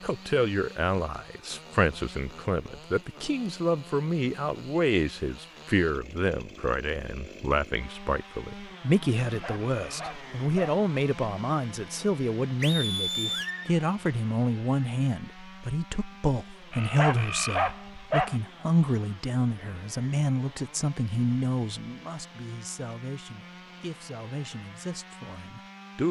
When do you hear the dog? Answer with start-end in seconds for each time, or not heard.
9.2-10.8, 16.7-18.4.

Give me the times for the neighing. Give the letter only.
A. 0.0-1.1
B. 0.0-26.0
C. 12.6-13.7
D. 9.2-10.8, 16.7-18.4
C.